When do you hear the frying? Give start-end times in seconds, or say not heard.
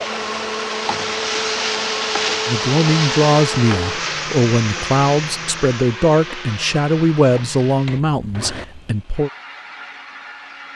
0.0-9.0.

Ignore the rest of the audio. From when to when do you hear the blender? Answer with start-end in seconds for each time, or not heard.
0.0-10.7.